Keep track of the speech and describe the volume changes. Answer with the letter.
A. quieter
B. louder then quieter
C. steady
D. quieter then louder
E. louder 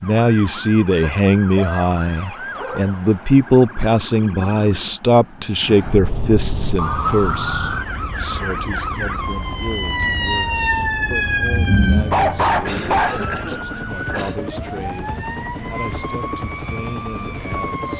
A.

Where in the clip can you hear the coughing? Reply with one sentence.
You can hear the coughing from 12.7 to 14.4 s.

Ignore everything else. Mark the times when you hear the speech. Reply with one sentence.
The speech can be heard from 0.0 to 17.9 s.